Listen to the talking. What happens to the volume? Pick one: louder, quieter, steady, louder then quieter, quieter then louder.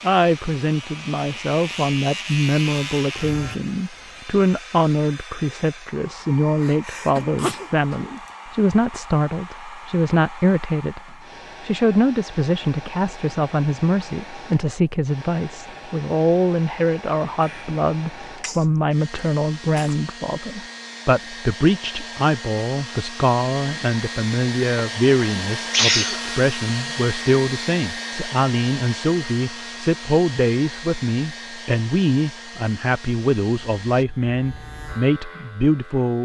steady.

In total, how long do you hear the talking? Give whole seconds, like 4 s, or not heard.
36 s.